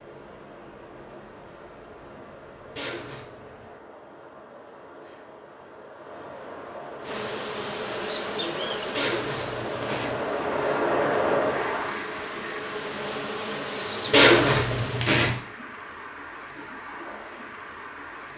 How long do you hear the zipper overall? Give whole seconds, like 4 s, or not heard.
3 s.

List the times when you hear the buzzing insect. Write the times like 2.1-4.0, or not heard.
7.0-15.1.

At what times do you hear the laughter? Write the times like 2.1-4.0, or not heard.
not heard.